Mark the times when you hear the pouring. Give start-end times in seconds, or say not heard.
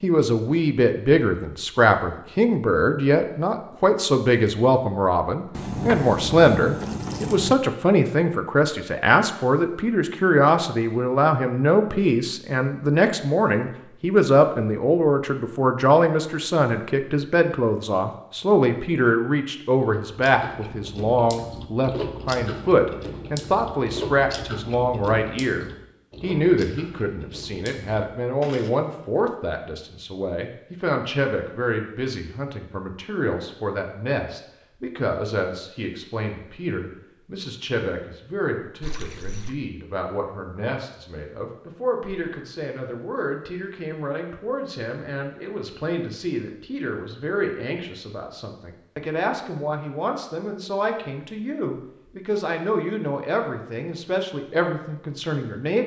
5.5-7.5, 38.8-39.6.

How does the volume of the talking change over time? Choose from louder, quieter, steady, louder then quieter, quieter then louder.
quieter.